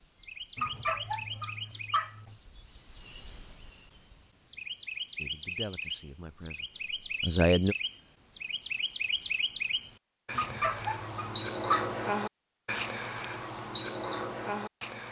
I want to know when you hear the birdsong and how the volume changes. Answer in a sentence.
You can hear the birdsong from 0.0 to 15.0 s, getting louder.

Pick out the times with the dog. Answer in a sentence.
The dog can be heard from 0.6 to 2.4 s and from 10.3 to 11.9 s.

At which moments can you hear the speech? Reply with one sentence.
The speech can be heard from 5.2 to 7.8 s.